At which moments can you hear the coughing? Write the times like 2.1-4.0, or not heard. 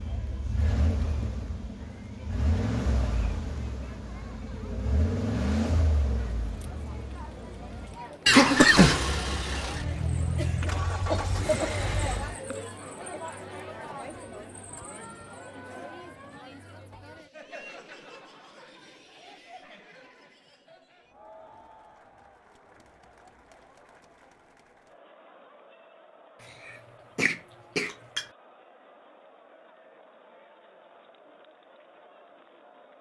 8.2-9.1, 11.1-13.2, 26.6-28.2.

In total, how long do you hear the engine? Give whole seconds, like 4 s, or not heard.
12 s.